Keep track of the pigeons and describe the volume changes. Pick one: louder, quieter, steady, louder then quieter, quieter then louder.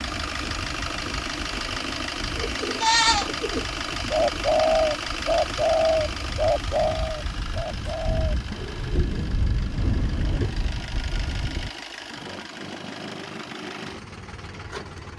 quieter.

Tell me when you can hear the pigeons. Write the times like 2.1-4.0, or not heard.
2.4-10.6.